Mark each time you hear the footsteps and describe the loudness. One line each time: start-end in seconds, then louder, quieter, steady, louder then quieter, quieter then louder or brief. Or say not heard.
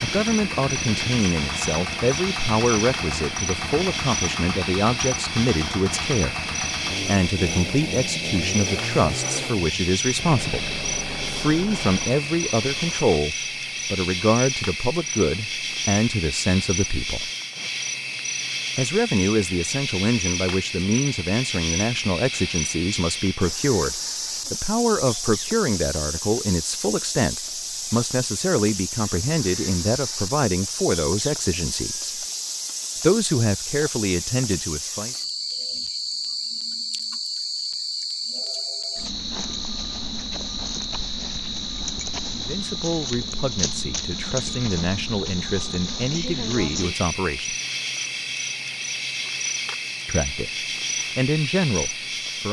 not heard.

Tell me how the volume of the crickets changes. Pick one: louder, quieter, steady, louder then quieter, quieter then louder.
steady.